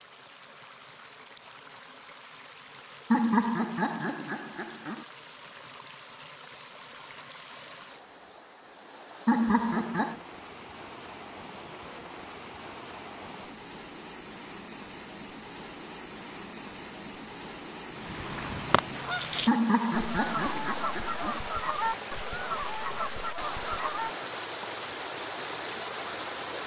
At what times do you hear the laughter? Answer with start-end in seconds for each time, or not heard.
3.1-5.0, 9.2-10.2, 19.4-21.4.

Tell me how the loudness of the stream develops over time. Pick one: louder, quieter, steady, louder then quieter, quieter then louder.
louder.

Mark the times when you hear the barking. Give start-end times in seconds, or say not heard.
not heard.